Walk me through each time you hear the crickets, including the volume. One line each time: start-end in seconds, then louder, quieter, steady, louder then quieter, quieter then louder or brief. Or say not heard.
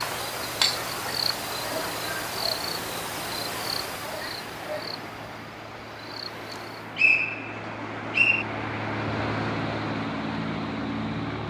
0.0-7.0 quieter.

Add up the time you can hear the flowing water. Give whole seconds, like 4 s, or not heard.
7 s.